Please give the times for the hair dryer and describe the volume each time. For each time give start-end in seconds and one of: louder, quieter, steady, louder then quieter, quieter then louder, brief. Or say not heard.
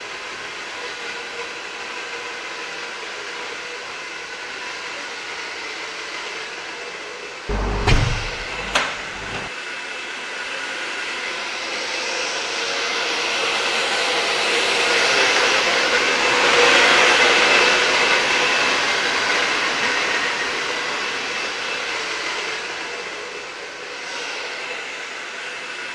0.0-25.9 louder then quieter.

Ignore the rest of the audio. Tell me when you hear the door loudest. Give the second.
8 s.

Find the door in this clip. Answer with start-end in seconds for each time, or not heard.
7.5-9.5.